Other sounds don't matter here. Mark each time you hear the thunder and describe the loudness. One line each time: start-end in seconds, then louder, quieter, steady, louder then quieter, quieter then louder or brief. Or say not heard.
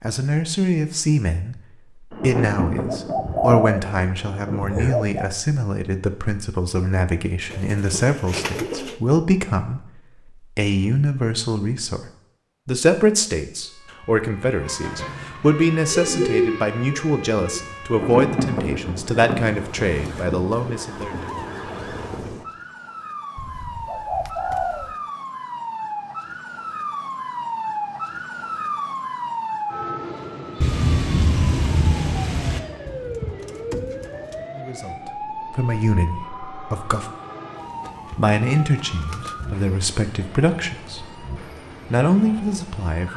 2.1-4.8 brief
17.9-22.4 quieter
30.6-32.6 brief.